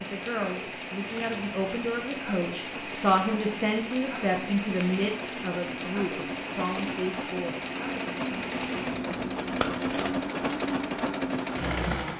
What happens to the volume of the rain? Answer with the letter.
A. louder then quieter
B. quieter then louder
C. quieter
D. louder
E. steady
E.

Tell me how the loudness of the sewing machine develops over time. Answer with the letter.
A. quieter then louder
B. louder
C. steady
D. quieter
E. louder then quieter
B.